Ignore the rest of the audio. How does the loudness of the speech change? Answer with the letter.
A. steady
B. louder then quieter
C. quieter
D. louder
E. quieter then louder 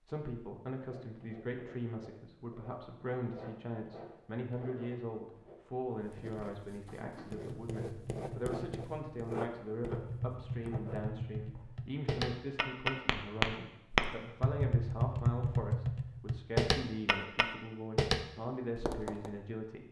A.